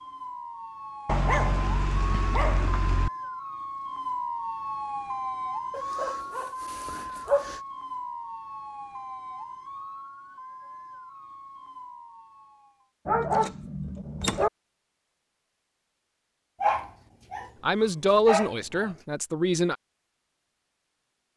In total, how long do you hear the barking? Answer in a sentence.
You can hear the barking for 8 seconds altogether.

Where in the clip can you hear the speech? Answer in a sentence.
You can hear the speech from 17.6 to 19.8 s.